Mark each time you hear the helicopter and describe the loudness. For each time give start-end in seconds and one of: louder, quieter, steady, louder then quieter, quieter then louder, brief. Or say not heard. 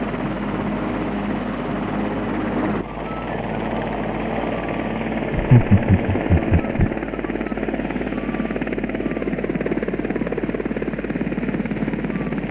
0.0-12.4 steady.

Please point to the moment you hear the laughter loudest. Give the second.
6 s.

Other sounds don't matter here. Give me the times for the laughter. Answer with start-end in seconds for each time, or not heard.
5.3-6.9.